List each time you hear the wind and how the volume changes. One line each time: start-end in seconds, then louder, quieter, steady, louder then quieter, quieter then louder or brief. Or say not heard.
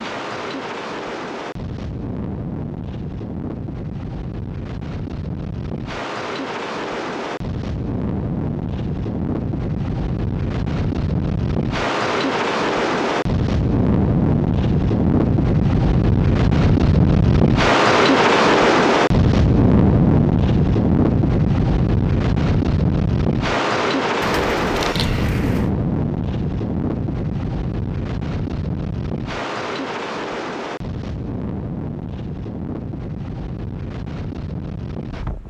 0.0-35.4 louder then quieter.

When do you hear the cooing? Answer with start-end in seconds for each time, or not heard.
24.2-25.7.